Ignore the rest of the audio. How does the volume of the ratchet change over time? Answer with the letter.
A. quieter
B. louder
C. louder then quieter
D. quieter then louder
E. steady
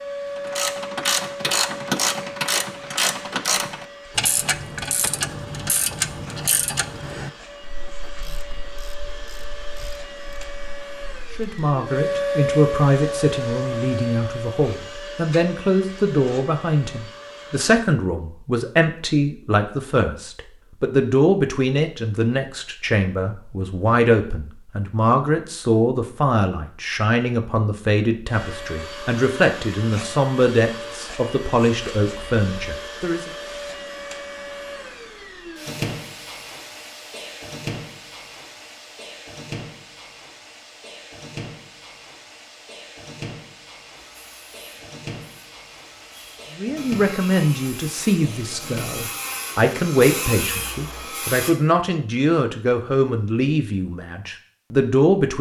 A.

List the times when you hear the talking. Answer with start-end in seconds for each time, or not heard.
11.3-33.3, 46.5-55.3.